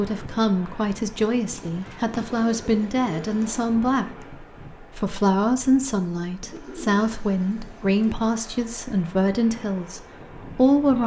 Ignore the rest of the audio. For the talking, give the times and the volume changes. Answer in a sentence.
You can hear the talking from 0.0 to 11.0 s, at a steady volume.